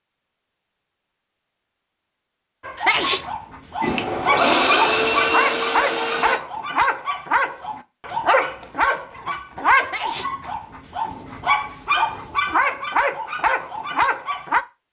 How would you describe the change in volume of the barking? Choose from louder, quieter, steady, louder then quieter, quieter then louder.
steady.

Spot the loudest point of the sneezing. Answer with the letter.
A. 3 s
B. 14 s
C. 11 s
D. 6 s
A.